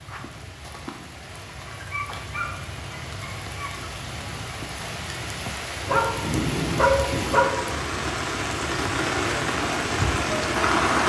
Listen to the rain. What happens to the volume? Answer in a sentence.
The volume of the rain goes up.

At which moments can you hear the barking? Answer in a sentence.
You can hear the barking from 1.6 to 3.9 s and from 5.8 to 7.6 s.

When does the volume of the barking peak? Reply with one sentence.
The loudest moment of the barking is at 7 seconds.